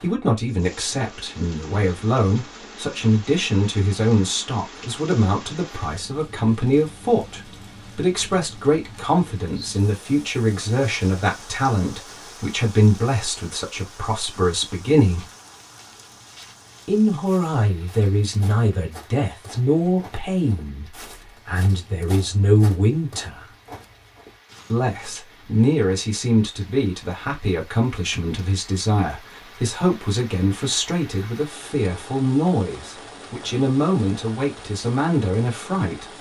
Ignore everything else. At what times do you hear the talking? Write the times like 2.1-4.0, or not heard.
0.0-15.2, 16.9-23.4, 24.7-36.0.